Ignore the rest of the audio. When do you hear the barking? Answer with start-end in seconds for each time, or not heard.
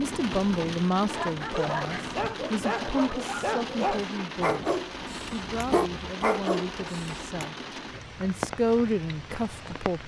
1.1-7.3.